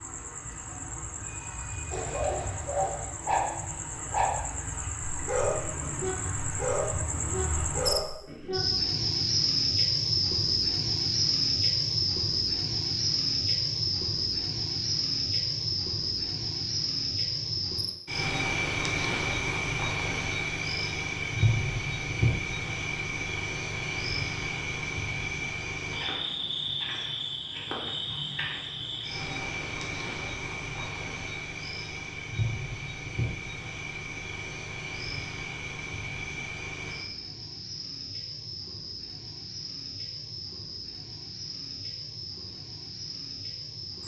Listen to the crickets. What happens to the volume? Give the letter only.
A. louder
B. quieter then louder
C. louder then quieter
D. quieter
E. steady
C.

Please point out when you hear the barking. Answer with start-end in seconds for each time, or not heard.
1.9-4.3, 5.1-8.6.